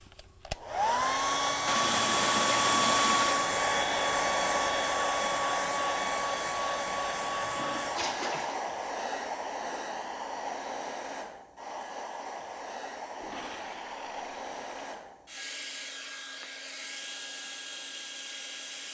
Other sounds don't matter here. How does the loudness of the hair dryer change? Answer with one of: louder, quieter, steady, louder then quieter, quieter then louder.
quieter.